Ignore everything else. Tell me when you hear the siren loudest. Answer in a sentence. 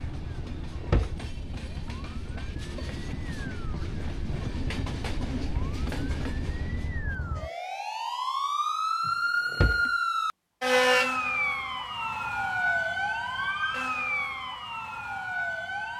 The loudest moment of the siren is at 11 seconds.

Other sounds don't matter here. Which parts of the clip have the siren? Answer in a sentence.
The siren can be heard from 0.0 to 15.9 s.